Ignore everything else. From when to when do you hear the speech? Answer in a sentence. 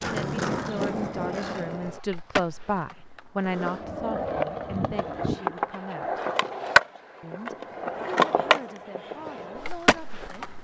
The speech can be heard from 0.1 to 6.2 s and from 7.2 to 10.5 s.